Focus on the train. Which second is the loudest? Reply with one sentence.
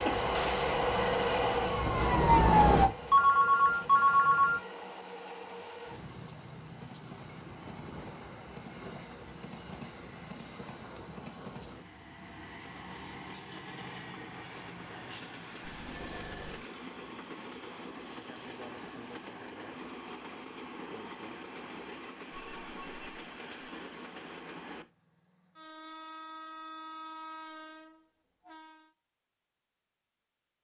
The loudest moment of the train is at 1 second.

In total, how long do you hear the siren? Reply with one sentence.
The siren can be heard for 3 seconds in total.